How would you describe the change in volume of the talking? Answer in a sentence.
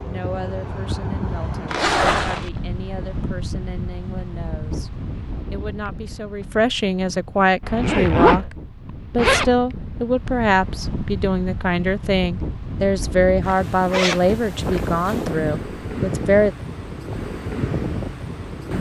The loudness of the talking goes up.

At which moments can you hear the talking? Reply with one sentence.
The talking can be heard from 0.1 to 4.9 s and from 5.5 to 16.5 s.